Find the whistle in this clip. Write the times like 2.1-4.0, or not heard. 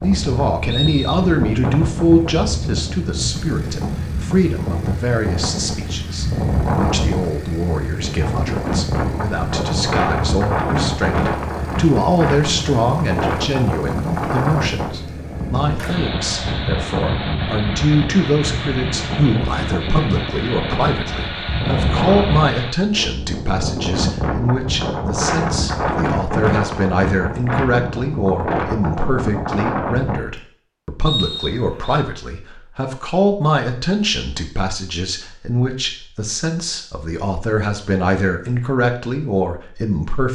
0.7-1.2, 31.1-32.0.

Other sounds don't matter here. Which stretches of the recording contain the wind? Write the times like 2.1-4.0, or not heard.
0.0-30.4.